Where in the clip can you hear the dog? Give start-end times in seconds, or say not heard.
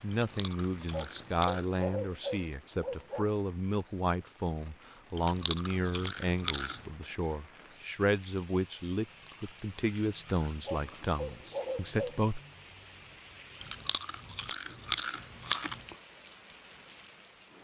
0.9-3.4, 10.7-12.2.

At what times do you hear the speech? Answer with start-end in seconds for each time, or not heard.
0.0-12.4.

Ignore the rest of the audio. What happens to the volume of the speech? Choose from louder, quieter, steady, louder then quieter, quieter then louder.
steady.